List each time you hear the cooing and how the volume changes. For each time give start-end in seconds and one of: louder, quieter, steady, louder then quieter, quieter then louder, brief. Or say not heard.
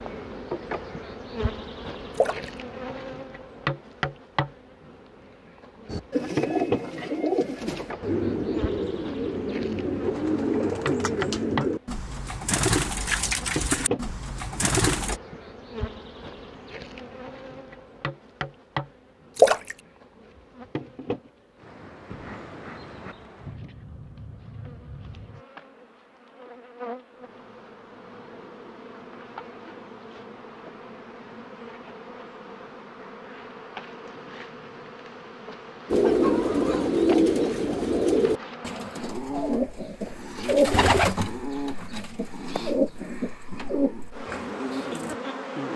5.8-15.2 steady
35.9-45.1 quieter.